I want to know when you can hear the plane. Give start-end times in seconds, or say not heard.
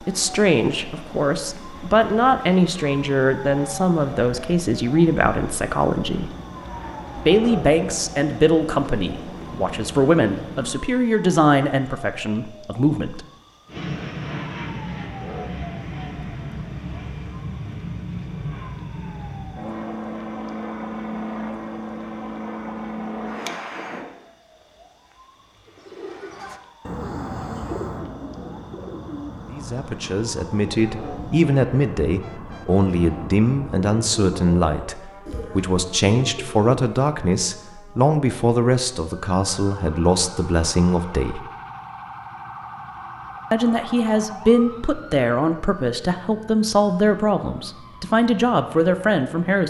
0.0-10.8, 13.7-24.1.